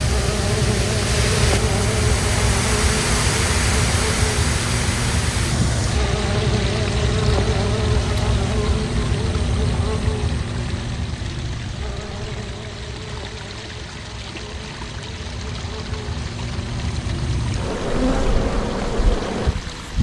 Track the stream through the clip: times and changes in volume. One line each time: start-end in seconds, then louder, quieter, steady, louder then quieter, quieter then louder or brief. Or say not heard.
0.0-19.9 quieter.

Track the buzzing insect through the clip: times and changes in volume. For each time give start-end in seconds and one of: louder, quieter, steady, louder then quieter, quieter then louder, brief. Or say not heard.
0.0-19.9 quieter then louder.